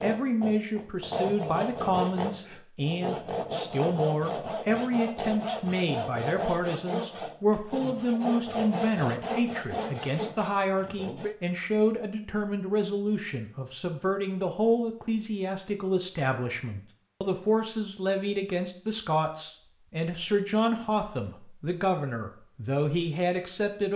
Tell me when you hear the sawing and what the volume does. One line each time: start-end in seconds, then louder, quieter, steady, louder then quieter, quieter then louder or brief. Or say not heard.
0.0-11.3 steady.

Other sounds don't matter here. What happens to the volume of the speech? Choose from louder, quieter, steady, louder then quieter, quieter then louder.
steady.